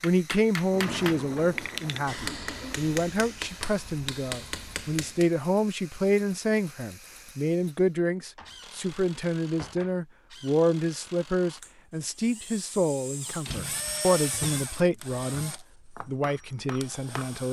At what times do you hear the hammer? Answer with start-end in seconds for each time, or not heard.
0.0-5.3, 16.2-17.4.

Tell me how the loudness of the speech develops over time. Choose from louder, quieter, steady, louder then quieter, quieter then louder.
steady.